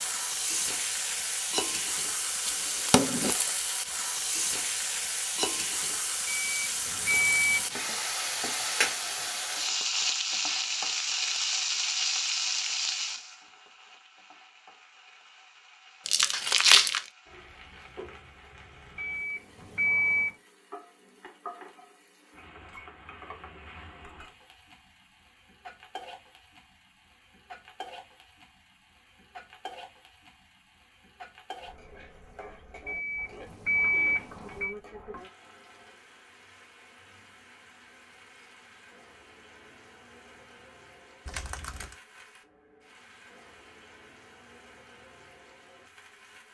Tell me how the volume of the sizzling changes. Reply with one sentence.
The loudness of the sizzling goes down.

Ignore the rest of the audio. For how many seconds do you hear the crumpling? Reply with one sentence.
You can hear the crumpling for 3 seconds altogether.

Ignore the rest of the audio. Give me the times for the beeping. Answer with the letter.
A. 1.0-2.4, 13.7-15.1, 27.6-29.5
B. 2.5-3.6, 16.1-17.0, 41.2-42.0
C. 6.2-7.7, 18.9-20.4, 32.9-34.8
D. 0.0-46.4
C.